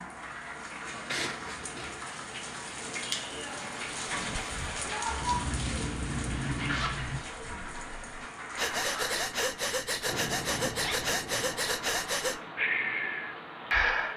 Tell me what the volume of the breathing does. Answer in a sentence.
The loudness of the breathing goes up.